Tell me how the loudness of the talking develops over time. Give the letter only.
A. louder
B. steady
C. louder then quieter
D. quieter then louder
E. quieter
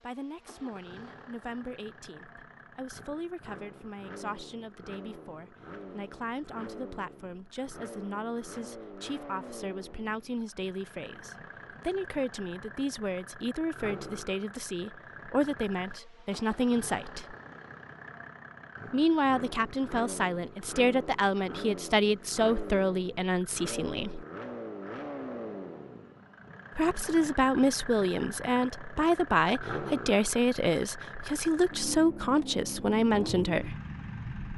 A.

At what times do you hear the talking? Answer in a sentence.
You can hear the talking from 0.0 to 17.4 s, from 18.9 to 24.2 s and from 26.8 to 33.8 s.